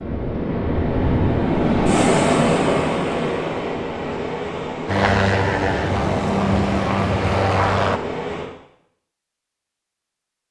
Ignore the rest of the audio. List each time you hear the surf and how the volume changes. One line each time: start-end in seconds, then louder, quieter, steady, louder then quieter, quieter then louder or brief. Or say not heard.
0.0-8.5 quieter.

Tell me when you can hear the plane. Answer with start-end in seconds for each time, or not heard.
4.8-8.0.